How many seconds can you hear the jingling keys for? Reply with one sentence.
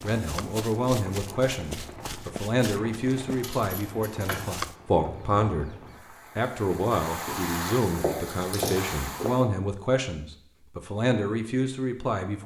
You can hear the jingling keys for 3 seconds altogether.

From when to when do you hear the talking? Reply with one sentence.
The talking can be heard from 0.0 to 5.8 s and from 6.3 to 12.4 s.